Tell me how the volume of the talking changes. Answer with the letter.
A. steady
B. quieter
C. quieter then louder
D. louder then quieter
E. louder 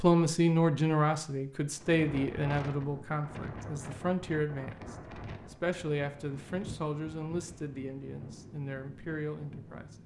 B.